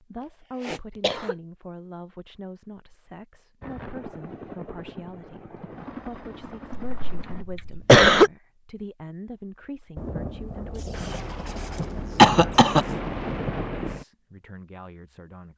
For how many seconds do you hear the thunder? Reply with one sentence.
You can hear the thunder for 4 seconds altogether.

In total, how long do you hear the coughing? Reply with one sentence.
The coughing can be heard for 3 seconds in total.